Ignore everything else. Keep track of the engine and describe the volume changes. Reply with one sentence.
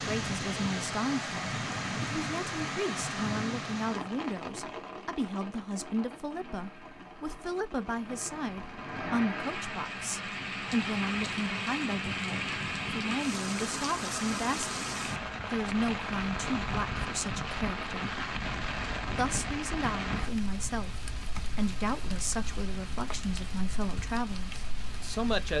The volume of the engine goes up.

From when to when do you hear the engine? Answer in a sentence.
The engine can be heard from 6.3 to 10.3 s.